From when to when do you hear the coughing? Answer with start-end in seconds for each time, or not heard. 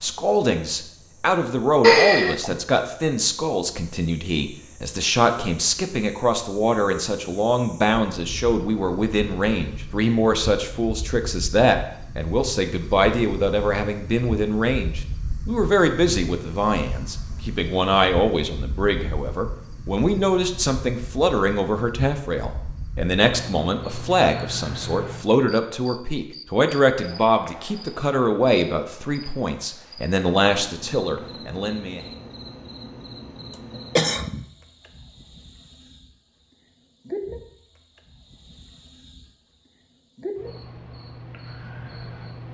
1.8-2.5, 33.5-34.5.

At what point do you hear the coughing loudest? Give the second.
2 s.